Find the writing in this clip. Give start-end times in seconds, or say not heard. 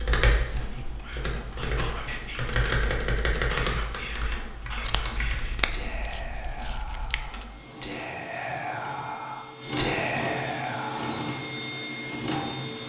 not heard.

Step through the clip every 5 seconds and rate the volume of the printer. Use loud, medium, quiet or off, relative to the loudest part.
quiet, medium, loud.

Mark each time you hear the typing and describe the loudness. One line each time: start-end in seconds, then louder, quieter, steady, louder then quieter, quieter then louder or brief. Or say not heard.
0.0-5.5 louder then quieter.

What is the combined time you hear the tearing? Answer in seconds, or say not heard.
3 s.